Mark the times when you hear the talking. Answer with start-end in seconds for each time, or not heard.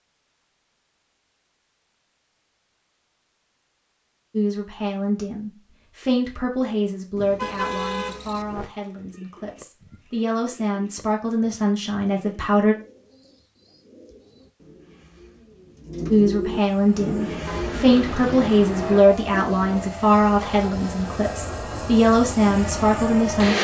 4.3-12.8, 16.1-23.5.